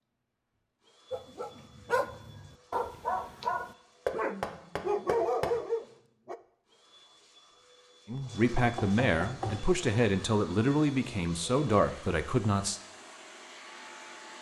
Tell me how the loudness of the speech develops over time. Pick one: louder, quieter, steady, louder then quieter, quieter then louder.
steady.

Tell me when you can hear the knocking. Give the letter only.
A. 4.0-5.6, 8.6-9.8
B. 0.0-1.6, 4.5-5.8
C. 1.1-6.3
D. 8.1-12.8
A.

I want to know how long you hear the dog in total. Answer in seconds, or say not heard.
5 s.